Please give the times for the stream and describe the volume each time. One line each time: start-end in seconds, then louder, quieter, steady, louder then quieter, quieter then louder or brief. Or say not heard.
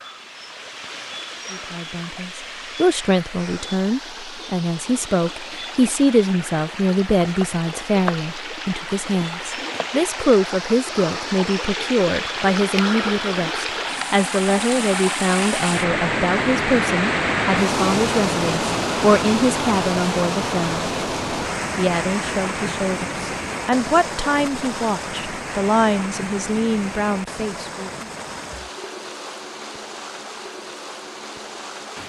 0.0-32.0 louder then quieter.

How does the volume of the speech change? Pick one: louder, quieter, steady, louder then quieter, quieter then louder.
steady.